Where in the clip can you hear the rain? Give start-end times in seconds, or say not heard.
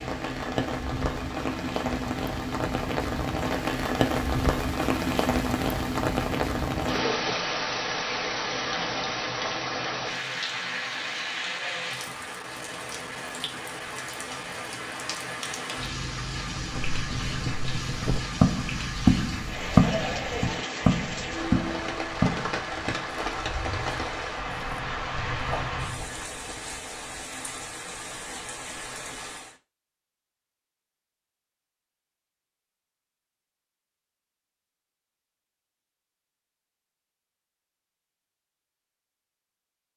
0.0-29.6.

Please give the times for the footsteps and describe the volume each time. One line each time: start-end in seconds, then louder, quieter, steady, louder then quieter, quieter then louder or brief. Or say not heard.
16.6-27.2 louder then quieter.